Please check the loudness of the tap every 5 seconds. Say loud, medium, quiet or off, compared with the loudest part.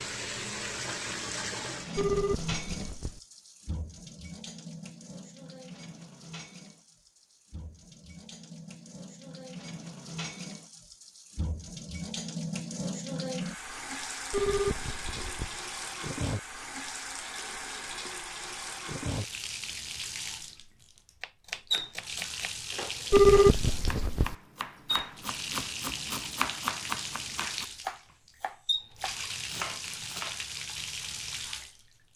loud, medium, loud, loud, loud, loud, loud.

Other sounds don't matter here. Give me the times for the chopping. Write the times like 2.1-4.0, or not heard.
21.2-30.4.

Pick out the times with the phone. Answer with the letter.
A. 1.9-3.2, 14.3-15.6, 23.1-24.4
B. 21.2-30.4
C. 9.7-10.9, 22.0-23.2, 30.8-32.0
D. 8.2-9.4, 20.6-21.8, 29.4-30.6
A.